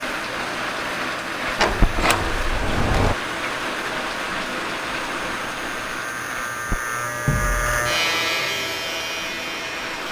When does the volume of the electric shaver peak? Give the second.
8 s.